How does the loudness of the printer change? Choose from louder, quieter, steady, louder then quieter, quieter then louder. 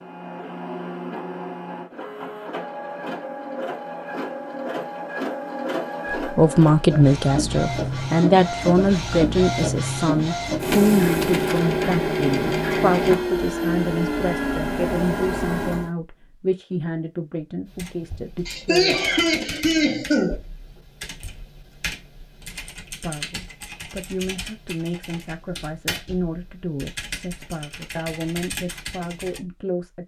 louder.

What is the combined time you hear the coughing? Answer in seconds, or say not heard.
2 s.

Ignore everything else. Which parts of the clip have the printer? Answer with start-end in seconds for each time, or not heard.
0.0-15.9.